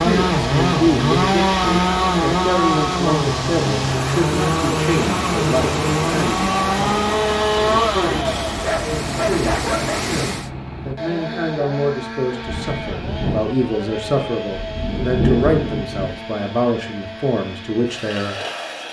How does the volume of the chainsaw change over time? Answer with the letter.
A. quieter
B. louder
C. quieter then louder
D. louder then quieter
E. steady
A.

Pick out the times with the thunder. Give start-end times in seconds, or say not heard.
12.4-16.2.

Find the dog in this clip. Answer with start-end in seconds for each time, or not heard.
8.4-10.1.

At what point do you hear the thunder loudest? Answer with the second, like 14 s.
15 s.